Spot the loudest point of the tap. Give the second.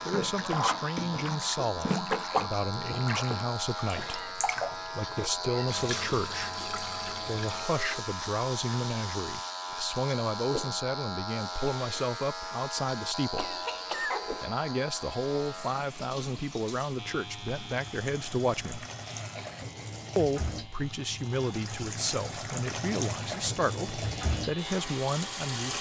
2 s.